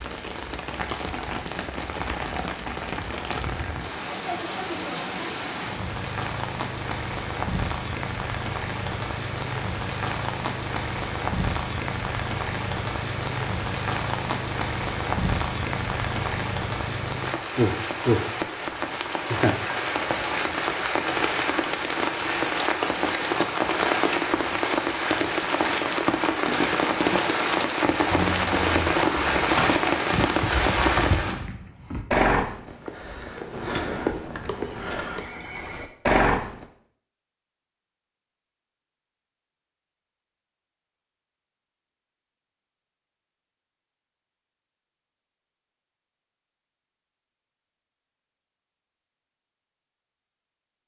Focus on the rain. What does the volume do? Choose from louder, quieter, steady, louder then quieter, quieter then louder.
louder.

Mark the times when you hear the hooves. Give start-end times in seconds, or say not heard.
28.1-36.6.